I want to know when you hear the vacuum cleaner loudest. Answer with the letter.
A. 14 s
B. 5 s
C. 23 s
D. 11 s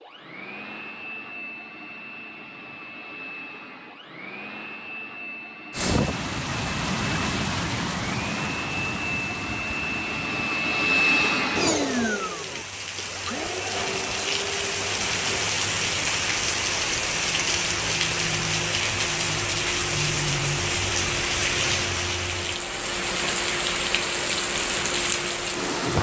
D.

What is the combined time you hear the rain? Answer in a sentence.
The rain can be heard for 20 seconds in total.